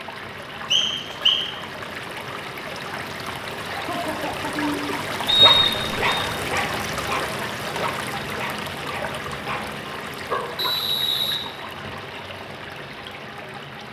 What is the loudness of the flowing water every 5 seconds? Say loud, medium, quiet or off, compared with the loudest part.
loud, loud, medium.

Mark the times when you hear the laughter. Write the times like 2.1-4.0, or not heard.
3.6-4.9.